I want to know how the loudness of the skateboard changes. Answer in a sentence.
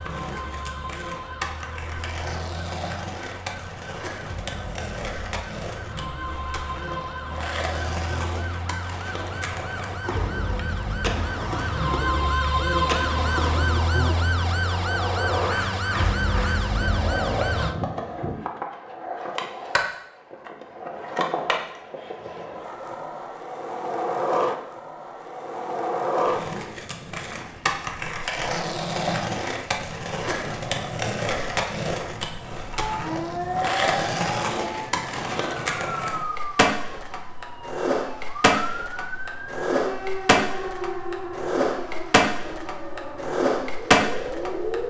The volume of the skateboard goes up.